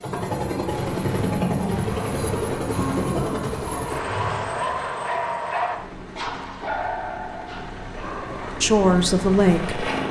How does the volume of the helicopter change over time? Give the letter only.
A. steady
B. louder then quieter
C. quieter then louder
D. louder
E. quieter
C.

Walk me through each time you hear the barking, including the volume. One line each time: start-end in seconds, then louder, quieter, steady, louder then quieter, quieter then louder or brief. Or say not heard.
1.9-8.6 louder then quieter.